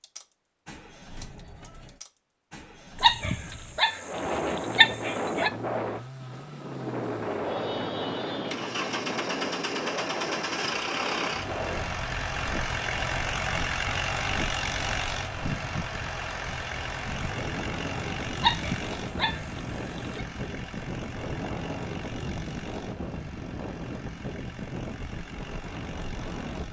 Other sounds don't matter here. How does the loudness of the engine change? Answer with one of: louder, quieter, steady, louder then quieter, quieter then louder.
louder then quieter.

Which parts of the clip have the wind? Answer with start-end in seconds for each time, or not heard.
4.0-26.6.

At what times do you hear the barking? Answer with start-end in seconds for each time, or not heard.
3.0-5.5, 18.4-20.2.